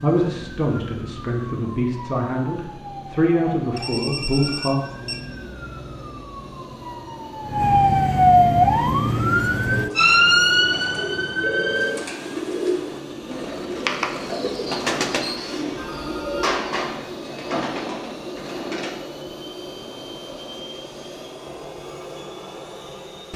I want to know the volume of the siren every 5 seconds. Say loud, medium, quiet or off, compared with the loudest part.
quiet, loud, loud, off, off.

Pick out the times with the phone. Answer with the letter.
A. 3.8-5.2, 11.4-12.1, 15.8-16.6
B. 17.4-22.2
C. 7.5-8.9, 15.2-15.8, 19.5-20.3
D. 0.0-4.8
A.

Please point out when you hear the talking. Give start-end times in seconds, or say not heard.
0.0-4.8.